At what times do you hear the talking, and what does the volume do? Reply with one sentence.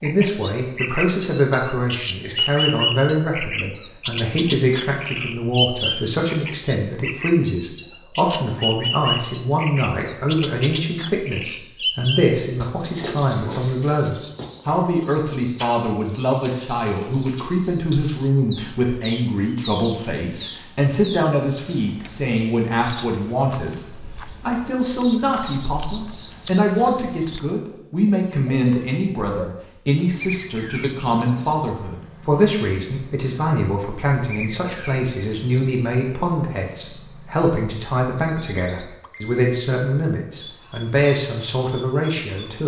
You can hear the talking from 0.0 to 42.6 s, at a steady volume.